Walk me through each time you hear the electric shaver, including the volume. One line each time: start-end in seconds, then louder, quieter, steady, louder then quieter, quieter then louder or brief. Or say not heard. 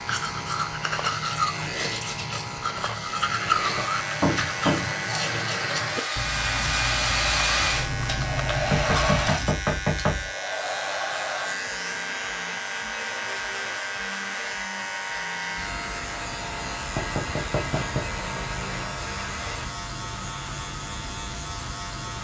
0.0-22.1 steady.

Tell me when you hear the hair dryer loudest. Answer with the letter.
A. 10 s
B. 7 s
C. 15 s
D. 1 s
B.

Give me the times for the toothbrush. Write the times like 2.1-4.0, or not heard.
0.1-9.6.